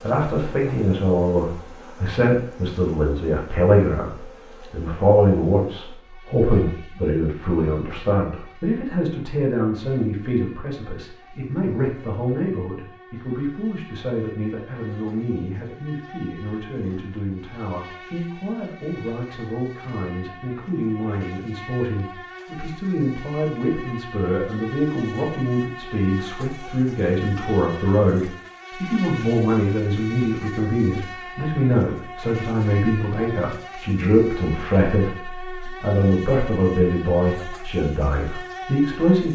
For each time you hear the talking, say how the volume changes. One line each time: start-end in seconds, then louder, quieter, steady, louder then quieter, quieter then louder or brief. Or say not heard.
0.0-39.3 quieter then louder.